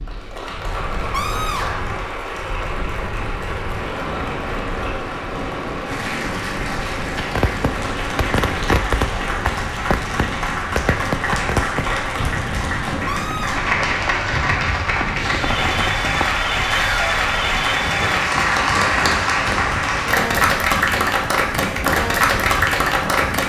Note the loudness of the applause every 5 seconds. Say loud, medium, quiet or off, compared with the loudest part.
medium, medium, medium, loud, loud.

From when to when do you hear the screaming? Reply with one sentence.
You can hear the screaming from 1.1 to 2.0 s, from 13.1 to 13.7 s and from 16.7 to 17.1 s.